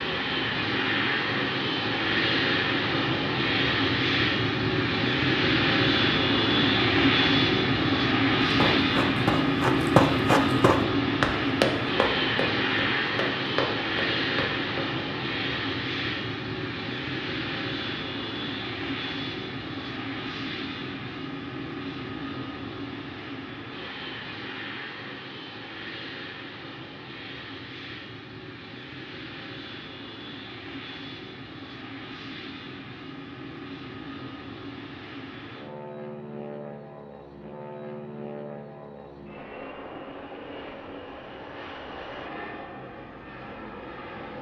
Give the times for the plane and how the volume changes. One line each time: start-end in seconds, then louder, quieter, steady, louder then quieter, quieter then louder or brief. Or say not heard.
0.0-44.3 quieter.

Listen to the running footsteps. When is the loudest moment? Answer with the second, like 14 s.
10 s.